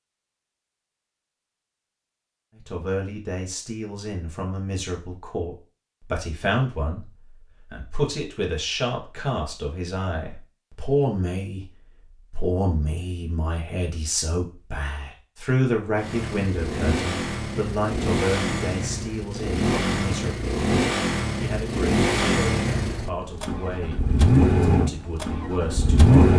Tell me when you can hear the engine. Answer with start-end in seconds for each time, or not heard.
15.9-26.3.